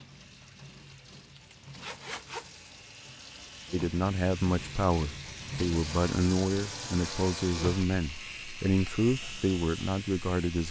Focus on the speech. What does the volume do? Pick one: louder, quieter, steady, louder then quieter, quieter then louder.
steady.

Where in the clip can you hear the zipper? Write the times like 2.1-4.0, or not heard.
1.4-2.6.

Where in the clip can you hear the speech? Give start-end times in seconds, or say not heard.
3.7-10.6.